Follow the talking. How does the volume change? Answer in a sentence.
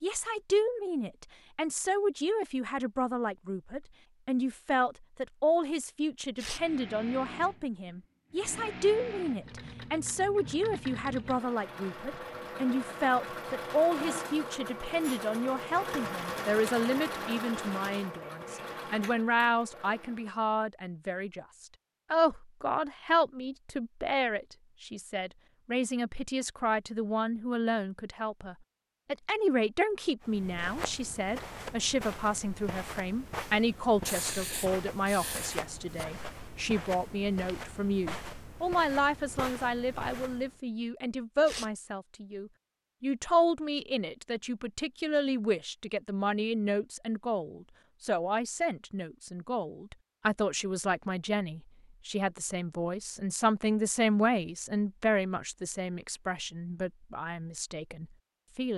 The loudness of the talking stays about the same.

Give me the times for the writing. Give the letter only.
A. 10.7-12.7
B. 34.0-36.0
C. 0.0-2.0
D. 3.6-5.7
B.